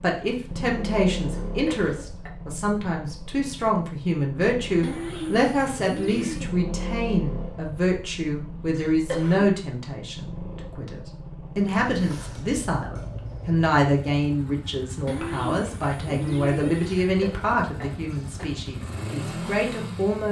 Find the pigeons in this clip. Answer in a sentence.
You can hear the pigeons from 4.8 to 6.5 s and from 15.1 to 17.1 s.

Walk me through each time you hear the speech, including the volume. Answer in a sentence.
You can hear the speech from 0.0 to 20.2 s, at a steady volume.